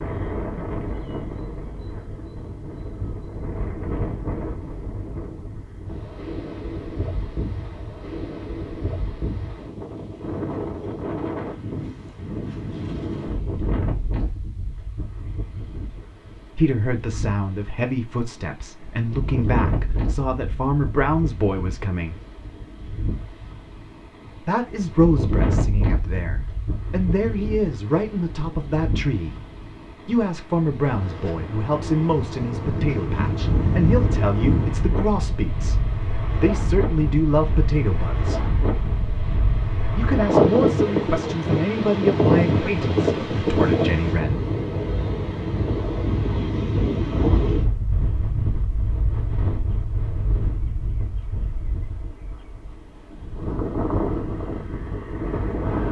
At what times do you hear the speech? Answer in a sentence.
You can hear the speech from 16.5 to 22.2 s, from 24.4 to 29.4 s, from 30.1 to 38.5 s and from 40.0 to 44.5 s.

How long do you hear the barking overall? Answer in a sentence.
The barking can't be heard in this clip.